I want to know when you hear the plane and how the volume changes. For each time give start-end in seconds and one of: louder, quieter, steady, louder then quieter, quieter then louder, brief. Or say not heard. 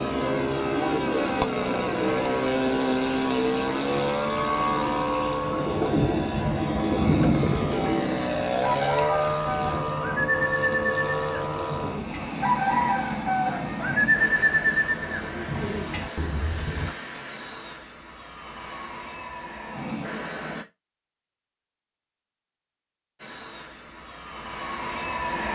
0.0-20.6 quieter
23.1-25.4 brief.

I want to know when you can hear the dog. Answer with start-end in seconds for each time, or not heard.
not heard.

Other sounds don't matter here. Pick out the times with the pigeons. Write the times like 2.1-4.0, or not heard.
5.4-16.9.